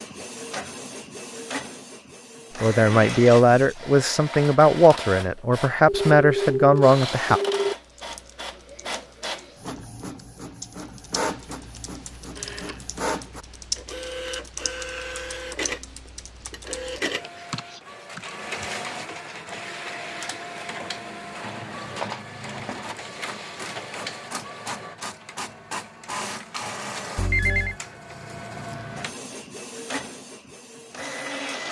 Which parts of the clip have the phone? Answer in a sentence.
The phone can be heard from 5.8 to 7.8 s, from 12.3 to 12.8 s and from 27.1 to 27.8 s.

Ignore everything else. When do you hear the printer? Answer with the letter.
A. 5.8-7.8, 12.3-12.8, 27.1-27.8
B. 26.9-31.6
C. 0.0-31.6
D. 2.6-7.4
C.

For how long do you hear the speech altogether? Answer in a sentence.
The speech can be heard for 5 seconds in total.